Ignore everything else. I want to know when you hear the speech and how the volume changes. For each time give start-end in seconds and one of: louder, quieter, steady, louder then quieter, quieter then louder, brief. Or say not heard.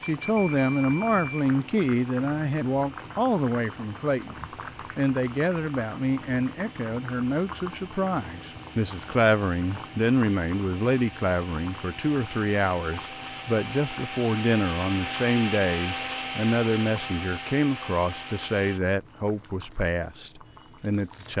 0.0-21.3 steady.